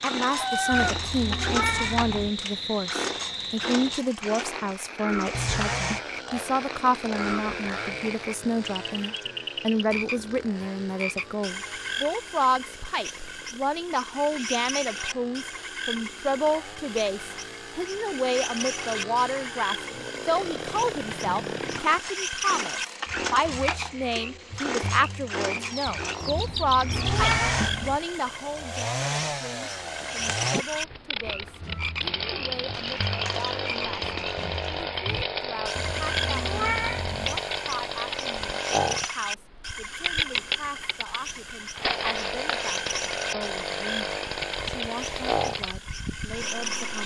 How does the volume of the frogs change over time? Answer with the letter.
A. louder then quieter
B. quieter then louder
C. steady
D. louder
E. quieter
C.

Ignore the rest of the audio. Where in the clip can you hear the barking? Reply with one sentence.
You can't hear the barking here.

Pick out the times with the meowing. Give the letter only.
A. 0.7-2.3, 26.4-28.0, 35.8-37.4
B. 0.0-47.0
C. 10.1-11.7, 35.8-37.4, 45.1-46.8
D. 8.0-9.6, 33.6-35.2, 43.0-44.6
A.